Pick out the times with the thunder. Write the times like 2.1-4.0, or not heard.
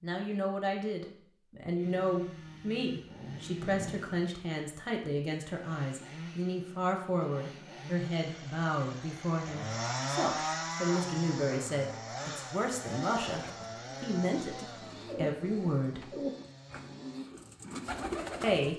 3.0-4.3.